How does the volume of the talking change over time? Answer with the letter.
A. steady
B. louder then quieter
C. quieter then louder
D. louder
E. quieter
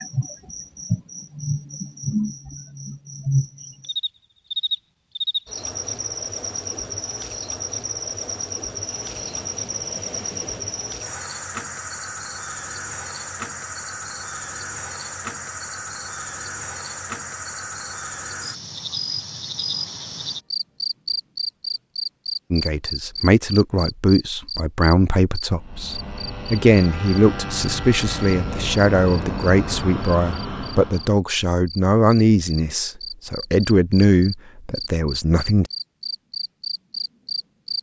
A.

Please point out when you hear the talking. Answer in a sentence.
You can hear the talking from 22.5 to 35.7 s.